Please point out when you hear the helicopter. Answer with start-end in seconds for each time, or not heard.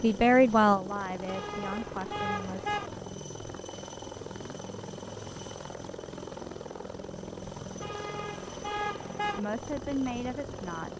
0.0-10.9.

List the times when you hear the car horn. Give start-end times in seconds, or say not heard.
1.2-2.9, 7.8-9.4.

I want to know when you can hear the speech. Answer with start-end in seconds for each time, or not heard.
0.0-2.8, 9.3-10.9.